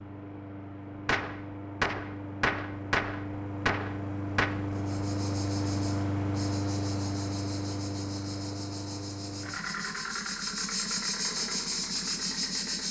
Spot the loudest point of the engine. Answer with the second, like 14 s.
6 s.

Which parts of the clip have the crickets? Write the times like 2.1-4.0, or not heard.
4.7-12.8.